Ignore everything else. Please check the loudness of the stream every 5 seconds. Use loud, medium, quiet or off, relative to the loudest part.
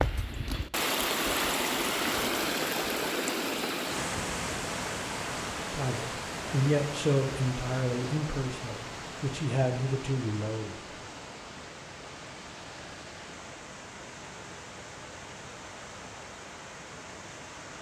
loud, medium, quiet, quiet.